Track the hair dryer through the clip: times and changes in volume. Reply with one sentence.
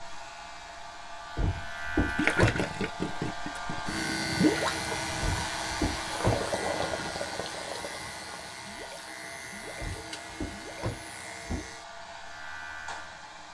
The hair dryer can be heard from 0.0 to 13.5 s, getting louder then quieter.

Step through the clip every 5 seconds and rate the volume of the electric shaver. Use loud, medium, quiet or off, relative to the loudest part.
loud, loud, medium.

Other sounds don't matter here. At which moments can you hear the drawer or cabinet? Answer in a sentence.
The drawer or cabinet can be heard from 1.4 to 2.6 s, from 5.2 to 6.5 s and from 9.8 to 11.7 s.